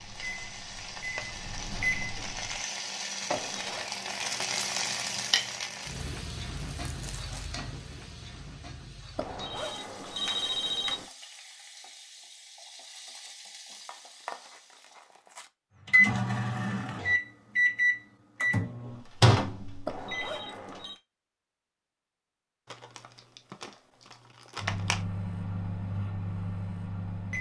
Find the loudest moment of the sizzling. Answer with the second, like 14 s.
5 s.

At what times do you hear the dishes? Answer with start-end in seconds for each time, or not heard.
not heard.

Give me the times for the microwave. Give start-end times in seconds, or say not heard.
0.0-2.6, 15.8-20.3, 24.6-27.3.